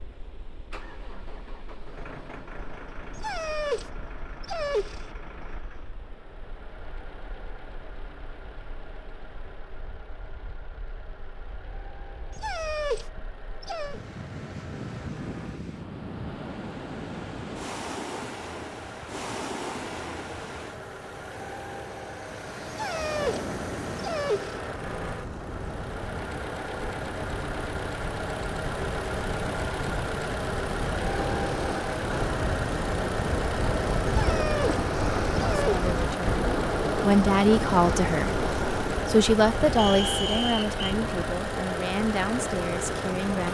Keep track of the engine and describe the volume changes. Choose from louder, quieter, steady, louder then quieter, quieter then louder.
louder.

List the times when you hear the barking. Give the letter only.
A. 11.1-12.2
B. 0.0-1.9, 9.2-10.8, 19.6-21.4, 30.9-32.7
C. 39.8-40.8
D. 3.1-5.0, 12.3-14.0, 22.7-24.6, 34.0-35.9
D.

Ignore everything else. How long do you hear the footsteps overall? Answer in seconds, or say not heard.
not heard.